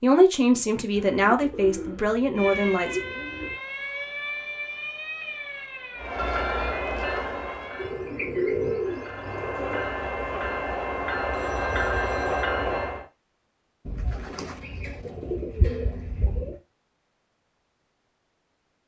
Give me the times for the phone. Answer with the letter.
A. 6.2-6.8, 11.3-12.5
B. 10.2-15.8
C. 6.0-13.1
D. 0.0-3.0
A.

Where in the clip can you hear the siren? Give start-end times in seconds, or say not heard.
2.4-8.0.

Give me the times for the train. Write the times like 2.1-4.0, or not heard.
6.0-13.1.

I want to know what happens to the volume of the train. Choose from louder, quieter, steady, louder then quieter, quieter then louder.
quieter then louder.